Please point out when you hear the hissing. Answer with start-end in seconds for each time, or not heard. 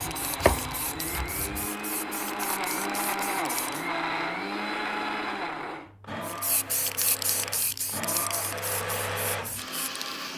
0.0-3.9, 6.2-10.1.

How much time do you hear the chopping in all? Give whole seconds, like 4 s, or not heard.
2 s.